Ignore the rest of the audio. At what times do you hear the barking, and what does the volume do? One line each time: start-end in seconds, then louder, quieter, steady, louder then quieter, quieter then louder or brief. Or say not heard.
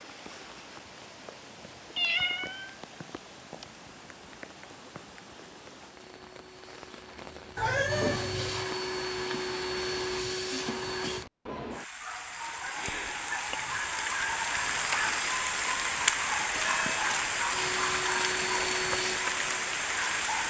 not heard.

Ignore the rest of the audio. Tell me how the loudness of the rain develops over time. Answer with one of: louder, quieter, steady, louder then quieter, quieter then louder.
louder.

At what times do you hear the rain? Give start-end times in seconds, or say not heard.
0.0-20.4.